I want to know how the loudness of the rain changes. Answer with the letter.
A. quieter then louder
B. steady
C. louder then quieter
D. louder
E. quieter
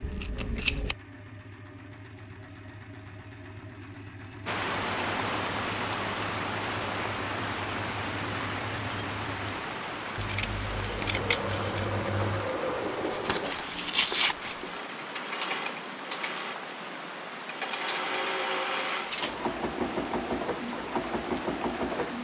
E.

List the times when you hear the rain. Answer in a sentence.
The rain can be heard from 4.5 to 22.1 s.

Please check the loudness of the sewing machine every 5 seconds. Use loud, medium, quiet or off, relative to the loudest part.
quiet, medium, loud, loud, loud.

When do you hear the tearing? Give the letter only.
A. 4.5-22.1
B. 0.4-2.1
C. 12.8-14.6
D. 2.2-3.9
C.